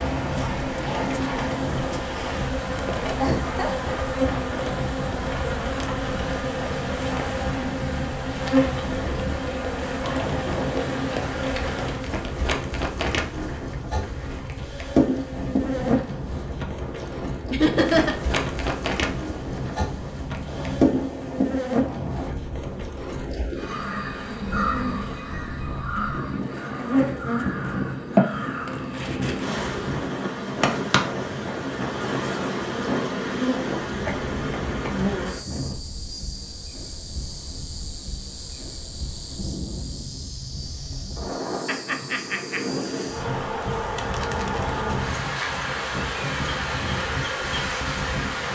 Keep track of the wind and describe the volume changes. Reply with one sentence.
The volume of the wind stays about the same.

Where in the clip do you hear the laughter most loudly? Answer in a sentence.
The volume of the laughter peaks at 18 seconds.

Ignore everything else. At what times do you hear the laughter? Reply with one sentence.
The laughter can be heard from 3.2 to 3.9 s, from 17.5 to 18.1 s and from 41.6 to 42.6 s.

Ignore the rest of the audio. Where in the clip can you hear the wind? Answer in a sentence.
The wind can be heard from 0.1 to 48.4 s.